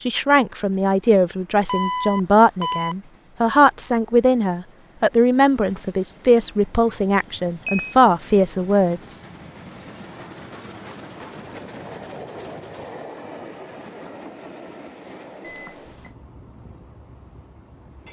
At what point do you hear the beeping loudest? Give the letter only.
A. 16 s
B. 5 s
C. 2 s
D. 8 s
C.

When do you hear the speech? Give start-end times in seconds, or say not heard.
0.1-9.2.